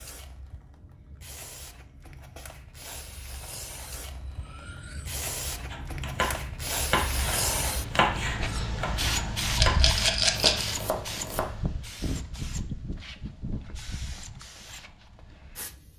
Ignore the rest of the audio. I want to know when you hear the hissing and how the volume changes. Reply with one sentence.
You can hear the hissing from 0.0 to 15.9 s, getting louder then quieter.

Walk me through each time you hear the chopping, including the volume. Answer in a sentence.
The chopping can be heard from 5.7 to 11.4 s, getting quieter.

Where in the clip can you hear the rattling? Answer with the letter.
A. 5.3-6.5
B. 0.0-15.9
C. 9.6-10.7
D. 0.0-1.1
C.